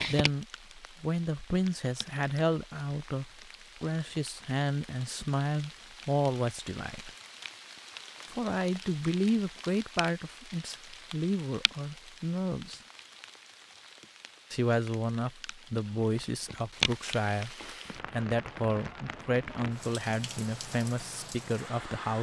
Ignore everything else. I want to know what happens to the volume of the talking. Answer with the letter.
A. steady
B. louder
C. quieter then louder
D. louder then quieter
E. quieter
A.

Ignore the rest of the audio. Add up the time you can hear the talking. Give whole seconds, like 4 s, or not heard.
19 s.